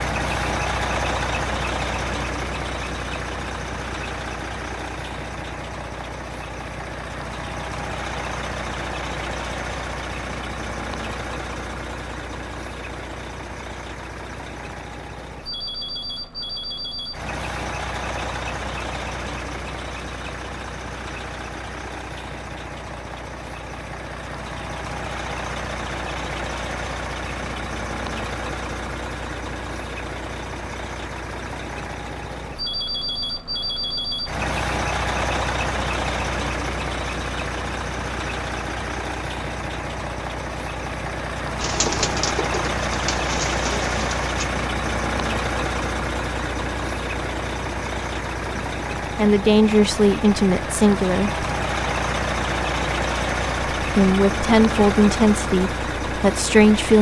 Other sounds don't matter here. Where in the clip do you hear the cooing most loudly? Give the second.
42 s.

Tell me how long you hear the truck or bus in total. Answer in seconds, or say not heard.
57 s.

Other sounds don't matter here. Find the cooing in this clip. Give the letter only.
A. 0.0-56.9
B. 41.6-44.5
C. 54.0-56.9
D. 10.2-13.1
B.